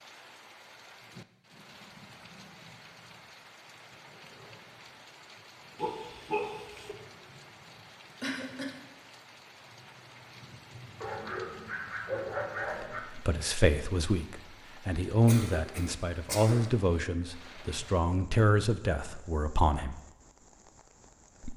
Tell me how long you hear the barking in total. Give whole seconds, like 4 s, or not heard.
3 s.